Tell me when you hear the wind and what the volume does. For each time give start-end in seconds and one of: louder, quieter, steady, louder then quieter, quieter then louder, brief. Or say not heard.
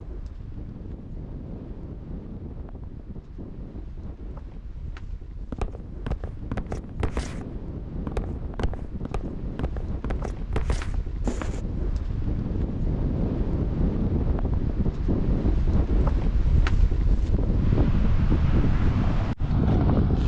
0.0-20.2 louder.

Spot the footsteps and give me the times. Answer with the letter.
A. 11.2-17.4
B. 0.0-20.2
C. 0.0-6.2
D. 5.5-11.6
D.